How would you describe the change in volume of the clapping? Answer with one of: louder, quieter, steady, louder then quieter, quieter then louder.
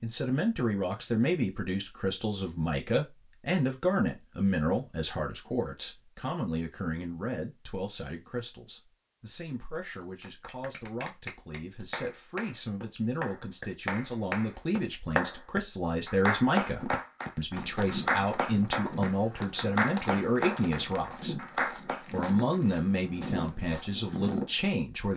louder.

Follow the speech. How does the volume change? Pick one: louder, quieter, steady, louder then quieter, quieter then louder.
quieter then louder.